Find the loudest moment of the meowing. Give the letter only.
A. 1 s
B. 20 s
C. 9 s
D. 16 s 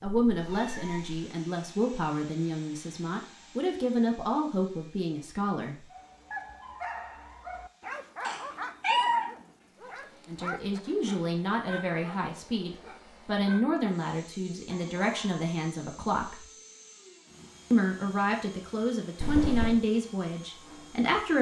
C.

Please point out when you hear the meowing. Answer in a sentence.
You can hear the meowing from 0.1 to 1.1 s, from 8.2 to 9.2 s and from 19.2 to 19.8 s.